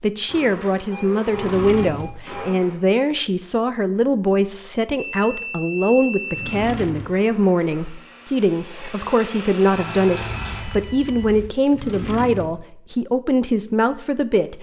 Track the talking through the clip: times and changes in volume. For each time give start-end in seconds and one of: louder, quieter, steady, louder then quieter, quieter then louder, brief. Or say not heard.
0.0-14.5 steady.